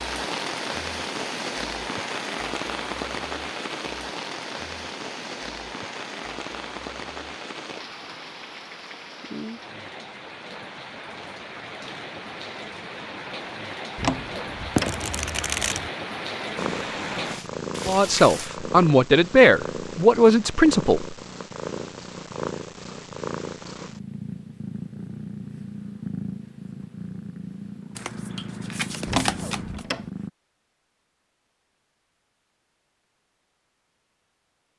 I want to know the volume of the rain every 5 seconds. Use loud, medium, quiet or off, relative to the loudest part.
loud, medium, medium, loud, off, off, off.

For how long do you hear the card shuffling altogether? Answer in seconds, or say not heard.
3 s.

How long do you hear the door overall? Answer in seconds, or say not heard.
2 s.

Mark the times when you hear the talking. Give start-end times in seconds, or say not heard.
17.9-21.1.